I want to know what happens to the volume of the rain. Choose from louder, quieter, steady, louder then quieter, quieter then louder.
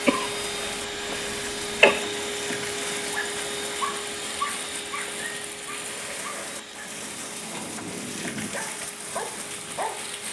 steady.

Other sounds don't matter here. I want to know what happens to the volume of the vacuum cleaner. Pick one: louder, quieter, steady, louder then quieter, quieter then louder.
quieter.